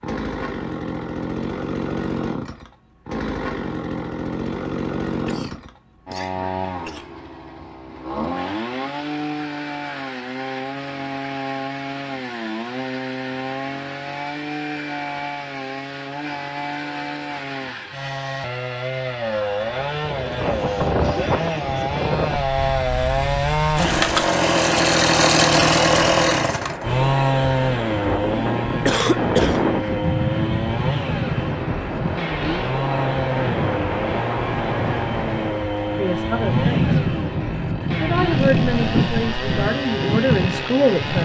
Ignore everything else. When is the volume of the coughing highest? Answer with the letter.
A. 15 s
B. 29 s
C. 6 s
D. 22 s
B.